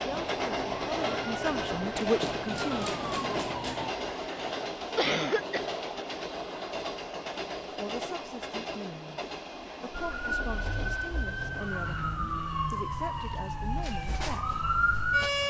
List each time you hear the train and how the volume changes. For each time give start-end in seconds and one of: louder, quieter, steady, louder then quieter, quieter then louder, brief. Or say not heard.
0.0-15.4 quieter.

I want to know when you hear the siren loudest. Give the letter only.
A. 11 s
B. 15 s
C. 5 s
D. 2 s
B.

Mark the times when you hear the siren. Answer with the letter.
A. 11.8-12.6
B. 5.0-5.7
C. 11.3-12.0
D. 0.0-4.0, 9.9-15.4
D.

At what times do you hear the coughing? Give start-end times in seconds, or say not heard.
5.0-5.7.